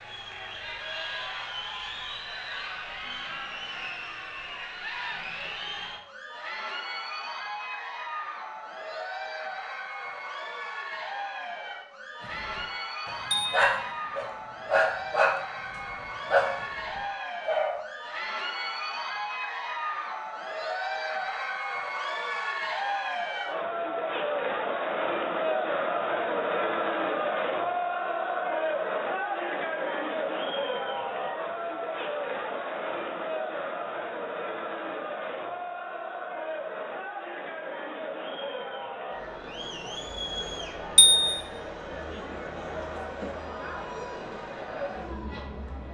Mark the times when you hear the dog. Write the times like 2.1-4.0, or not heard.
12.3-17.8.